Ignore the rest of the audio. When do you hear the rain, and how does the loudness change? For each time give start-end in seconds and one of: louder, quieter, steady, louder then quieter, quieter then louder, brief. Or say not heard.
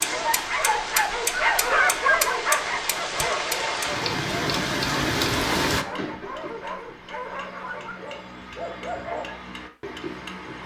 0.0-5.8 louder.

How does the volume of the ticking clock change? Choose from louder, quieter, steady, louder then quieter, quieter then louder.
quieter then louder.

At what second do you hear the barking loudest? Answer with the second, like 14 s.
2 s.